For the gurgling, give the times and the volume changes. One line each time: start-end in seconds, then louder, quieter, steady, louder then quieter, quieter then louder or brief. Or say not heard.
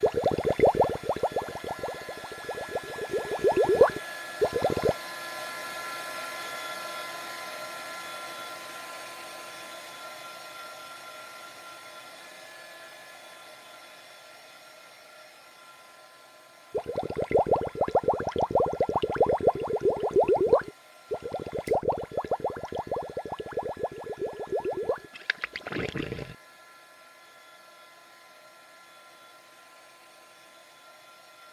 0.0-5.0 quieter then louder
16.7-26.4 quieter.